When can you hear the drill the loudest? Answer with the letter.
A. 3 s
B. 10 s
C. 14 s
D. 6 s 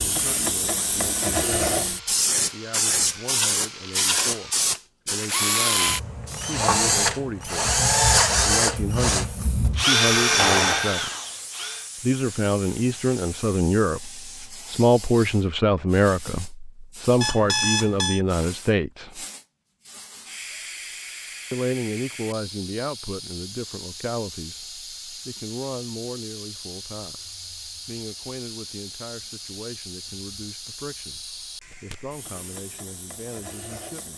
B.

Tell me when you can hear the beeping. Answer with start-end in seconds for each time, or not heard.
17.2-18.2.